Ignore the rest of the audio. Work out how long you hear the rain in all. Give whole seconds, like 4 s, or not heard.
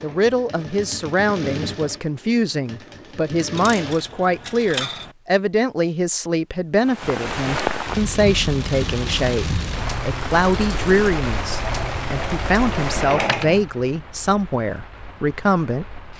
9 s.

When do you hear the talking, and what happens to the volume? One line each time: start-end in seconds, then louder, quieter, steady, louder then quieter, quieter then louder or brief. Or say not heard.
0.0-16.0 steady.